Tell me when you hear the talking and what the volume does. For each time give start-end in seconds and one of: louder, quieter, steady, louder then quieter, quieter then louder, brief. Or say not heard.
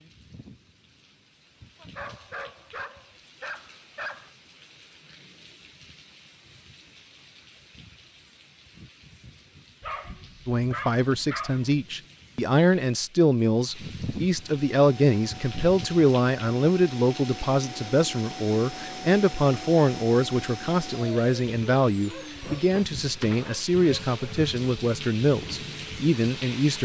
10.4-26.7 steady.